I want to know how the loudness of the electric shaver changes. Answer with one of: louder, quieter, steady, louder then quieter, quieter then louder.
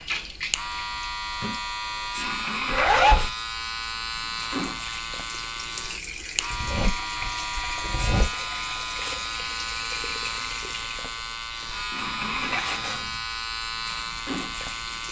steady.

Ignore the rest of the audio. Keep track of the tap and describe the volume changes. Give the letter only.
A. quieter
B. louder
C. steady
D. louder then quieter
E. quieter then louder
C.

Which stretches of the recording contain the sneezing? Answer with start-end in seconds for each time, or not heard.
not heard.